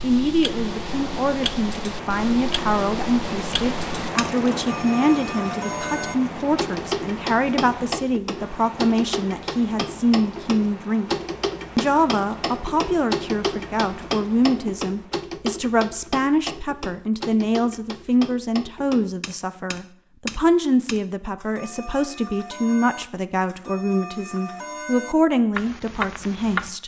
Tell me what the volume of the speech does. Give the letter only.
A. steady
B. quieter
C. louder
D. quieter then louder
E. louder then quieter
A.